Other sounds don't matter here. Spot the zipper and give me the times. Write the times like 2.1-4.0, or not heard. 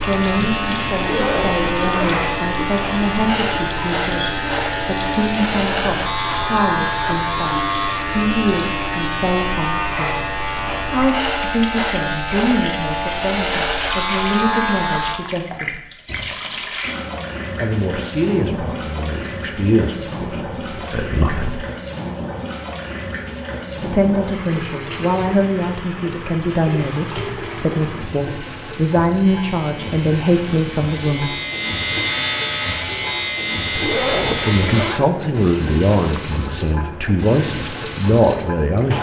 1.0-2.3, 33.8-35.1.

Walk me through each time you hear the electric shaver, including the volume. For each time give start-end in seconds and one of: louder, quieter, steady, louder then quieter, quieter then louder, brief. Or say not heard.
0.0-15.2 steady
29.2-35.0 louder.